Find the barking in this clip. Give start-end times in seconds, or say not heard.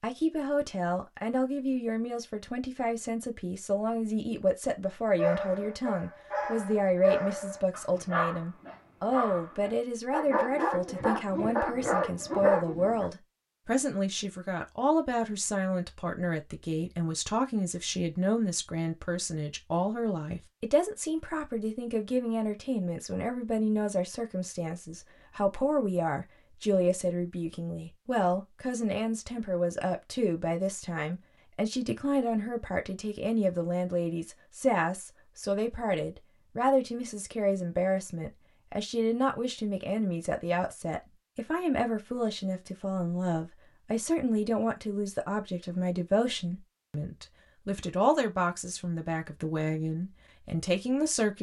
5.2-13.1.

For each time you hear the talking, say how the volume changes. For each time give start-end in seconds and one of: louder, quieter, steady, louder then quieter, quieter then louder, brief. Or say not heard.
0.0-51.3 steady.